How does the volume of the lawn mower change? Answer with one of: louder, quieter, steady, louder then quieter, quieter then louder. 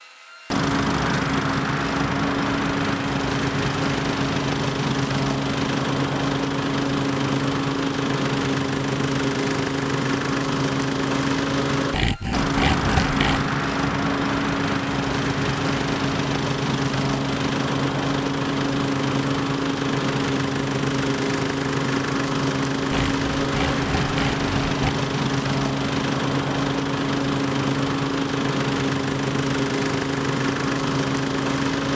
steady.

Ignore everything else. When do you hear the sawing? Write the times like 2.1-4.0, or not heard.
11.9-13.5, 22.9-24.8.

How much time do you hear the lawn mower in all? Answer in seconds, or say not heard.
32 s.